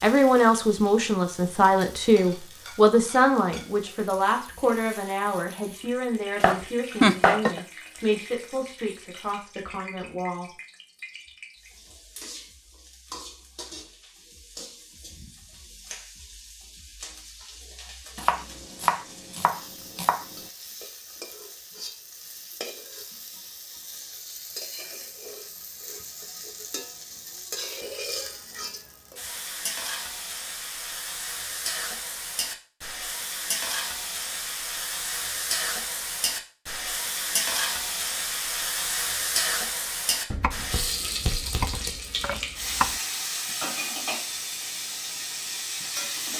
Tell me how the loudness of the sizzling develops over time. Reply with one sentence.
The loudness of the sizzling goes up.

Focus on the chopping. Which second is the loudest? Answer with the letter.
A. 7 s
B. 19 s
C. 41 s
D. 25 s
A.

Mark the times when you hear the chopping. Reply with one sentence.
The chopping can be heard from 6.4 to 7.6 s, from 18.1 to 20.2 s and from 40.3 to 43.0 s.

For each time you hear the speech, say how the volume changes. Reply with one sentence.
The speech can be heard from 0.0 to 10.4 s, getting quieter.